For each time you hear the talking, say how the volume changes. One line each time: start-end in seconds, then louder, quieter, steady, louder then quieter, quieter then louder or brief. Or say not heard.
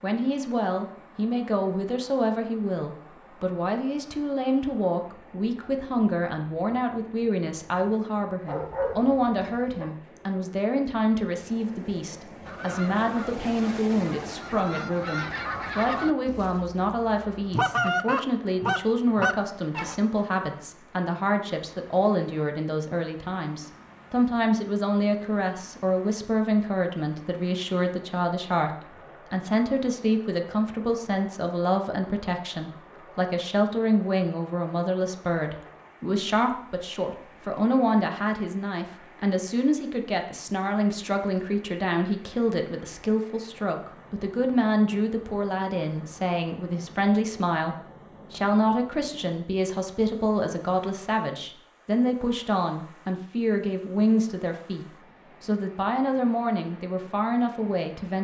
0.0-58.1 steady.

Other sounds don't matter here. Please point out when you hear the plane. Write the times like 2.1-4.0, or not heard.
not heard.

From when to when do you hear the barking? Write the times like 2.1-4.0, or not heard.
8.4-9.8.